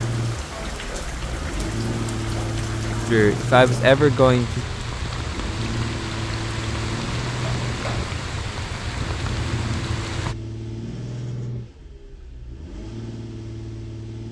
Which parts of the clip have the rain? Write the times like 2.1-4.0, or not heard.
0.0-10.3.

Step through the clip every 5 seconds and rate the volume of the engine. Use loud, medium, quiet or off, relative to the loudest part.
loud, loud, medium.